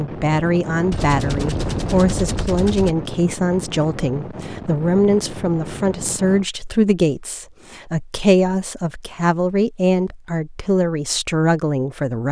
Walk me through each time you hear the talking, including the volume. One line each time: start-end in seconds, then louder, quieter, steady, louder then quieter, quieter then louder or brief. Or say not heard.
0.0-12.2 steady.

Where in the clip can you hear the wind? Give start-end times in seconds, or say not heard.
0.0-6.5.